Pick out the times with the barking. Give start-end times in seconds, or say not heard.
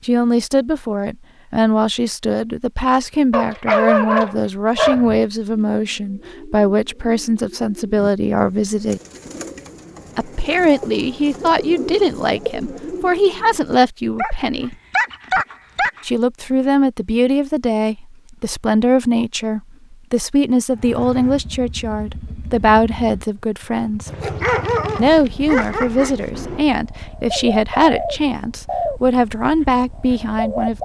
3.3-5.2, 14.2-16.1, 24.1-26.6.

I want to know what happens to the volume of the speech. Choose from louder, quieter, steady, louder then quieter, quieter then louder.
steady.